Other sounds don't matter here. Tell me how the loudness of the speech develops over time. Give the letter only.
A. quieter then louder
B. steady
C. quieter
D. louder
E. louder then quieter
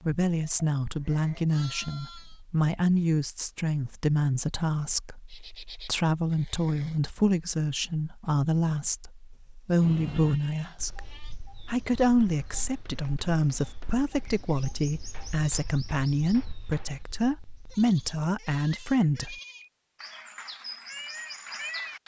B.